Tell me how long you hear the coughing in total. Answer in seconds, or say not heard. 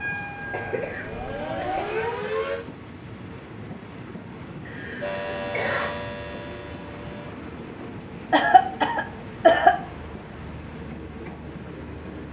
4 s.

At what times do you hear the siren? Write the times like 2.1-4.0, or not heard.
0.0-2.6, 5.0-7.3.